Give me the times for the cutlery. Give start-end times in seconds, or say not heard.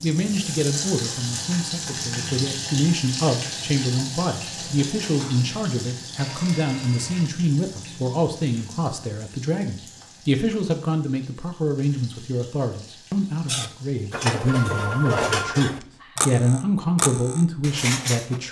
13.4-18.4.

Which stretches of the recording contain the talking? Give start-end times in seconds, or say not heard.
0.0-18.4.